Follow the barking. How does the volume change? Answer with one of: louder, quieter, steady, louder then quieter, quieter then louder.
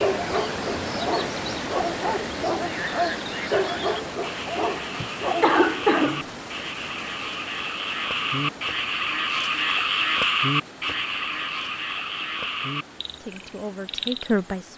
steady.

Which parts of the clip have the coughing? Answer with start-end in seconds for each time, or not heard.
5.0-6.2.